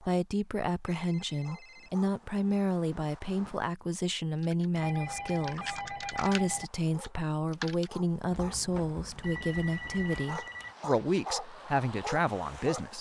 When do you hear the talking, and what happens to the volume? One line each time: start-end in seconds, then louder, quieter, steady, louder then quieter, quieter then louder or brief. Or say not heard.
0.0-12.9 steady.